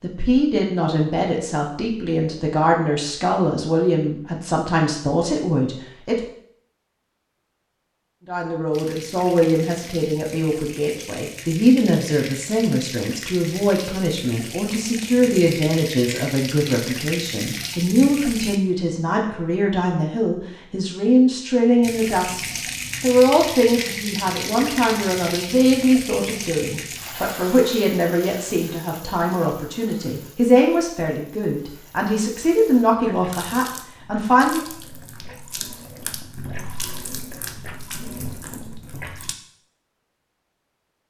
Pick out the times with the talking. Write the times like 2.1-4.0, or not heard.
0.0-6.2, 8.2-34.6.